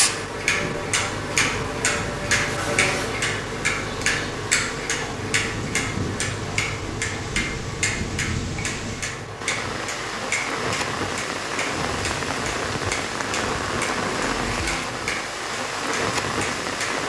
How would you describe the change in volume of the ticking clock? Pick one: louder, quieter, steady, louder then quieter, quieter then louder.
quieter.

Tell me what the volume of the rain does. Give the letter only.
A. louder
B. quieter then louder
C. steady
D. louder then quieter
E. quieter
A.